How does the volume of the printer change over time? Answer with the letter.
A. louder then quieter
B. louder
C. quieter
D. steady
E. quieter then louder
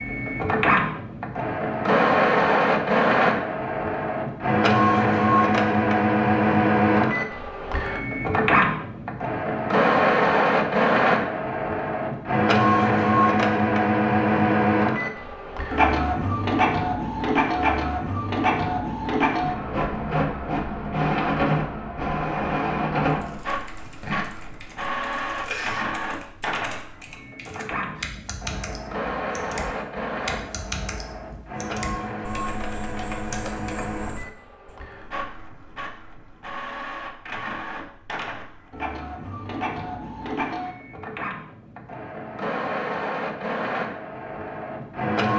C.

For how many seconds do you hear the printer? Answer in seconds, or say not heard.
45 s.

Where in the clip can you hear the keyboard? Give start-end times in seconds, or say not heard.
23.1-34.8.